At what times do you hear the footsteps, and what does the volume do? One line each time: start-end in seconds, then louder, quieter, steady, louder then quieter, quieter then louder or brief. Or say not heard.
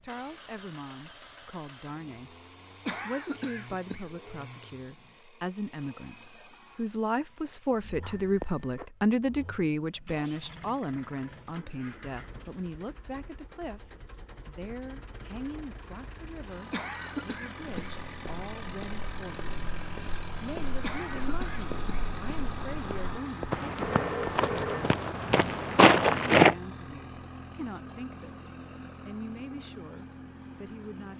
17.7-26.6 louder.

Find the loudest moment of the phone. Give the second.
24 s.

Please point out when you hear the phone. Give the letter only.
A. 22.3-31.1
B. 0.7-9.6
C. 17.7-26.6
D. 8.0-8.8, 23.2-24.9
D.